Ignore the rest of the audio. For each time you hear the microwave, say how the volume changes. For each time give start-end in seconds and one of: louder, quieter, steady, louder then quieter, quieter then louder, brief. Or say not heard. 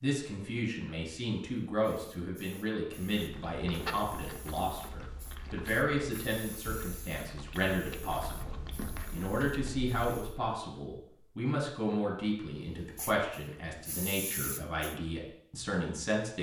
not heard.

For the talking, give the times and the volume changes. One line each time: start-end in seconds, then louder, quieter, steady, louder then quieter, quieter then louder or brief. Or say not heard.
0.0-16.3 steady.